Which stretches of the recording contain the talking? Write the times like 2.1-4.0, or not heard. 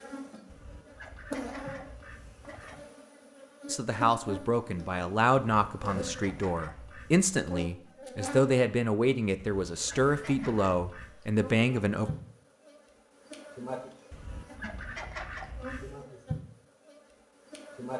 3.6-12.1.